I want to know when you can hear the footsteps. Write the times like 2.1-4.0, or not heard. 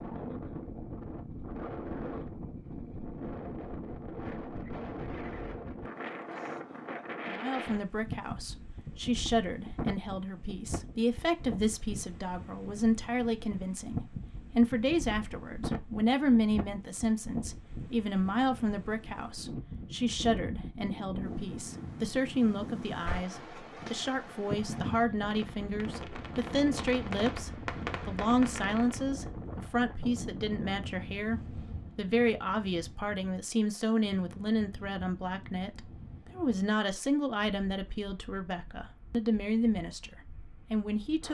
not heard.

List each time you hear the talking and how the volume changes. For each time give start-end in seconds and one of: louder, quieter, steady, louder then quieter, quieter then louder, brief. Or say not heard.
7.2-41.2 steady.